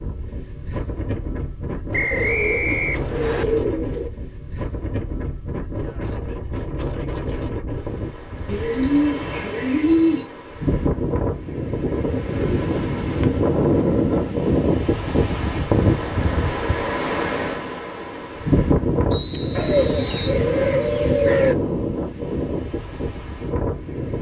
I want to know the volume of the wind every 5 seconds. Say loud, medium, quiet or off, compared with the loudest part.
medium, medium, loud, loud, loud.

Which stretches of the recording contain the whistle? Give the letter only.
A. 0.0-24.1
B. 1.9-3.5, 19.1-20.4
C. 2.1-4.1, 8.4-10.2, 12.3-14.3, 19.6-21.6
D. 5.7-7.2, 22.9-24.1
B.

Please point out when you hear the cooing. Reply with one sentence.
The cooing can be heard from 2.1 to 4.1 s, from 8.4 to 10.2 s, from 12.3 to 14.3 s and from 19.6 to 21.6 s.